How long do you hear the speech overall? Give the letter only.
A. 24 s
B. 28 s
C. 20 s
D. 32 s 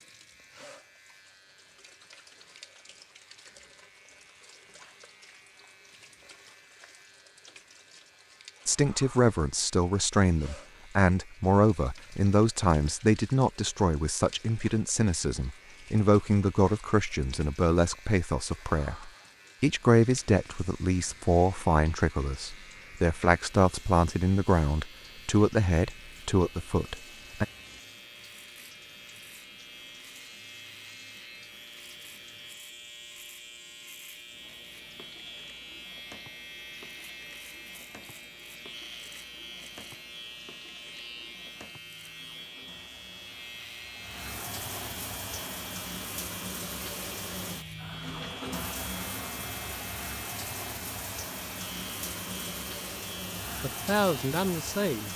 C.